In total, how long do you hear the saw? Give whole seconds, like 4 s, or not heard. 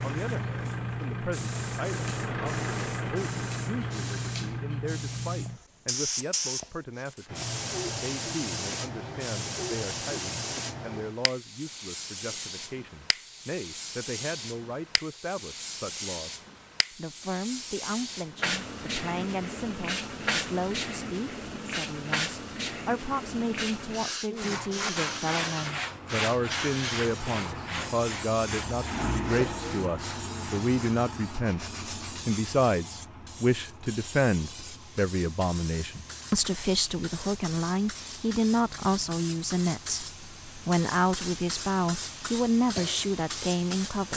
8 s.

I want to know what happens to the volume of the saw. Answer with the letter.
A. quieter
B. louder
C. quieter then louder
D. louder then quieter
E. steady
A.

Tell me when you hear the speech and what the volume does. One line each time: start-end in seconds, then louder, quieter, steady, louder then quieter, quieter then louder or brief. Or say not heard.
0.0-44.1 louder.